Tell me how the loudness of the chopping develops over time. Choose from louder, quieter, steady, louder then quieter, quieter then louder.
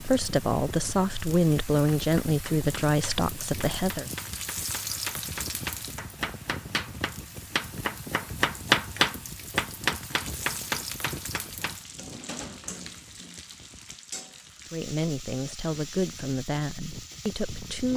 louder then quieter.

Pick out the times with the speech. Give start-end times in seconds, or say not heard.
0.0-4.0, 14.7-17.9.